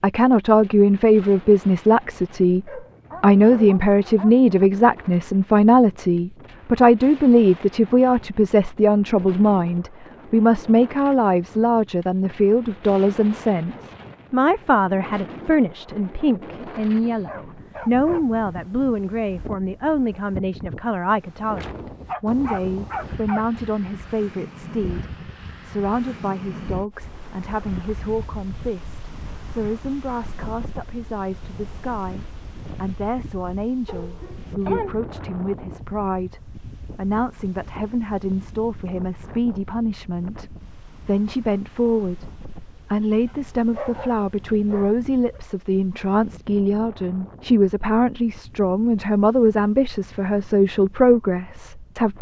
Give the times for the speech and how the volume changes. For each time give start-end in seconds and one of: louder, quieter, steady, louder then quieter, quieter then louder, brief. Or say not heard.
0.0-40.5 quieter
41.0-52.1 steady.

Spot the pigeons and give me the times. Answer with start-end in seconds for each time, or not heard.
not heard.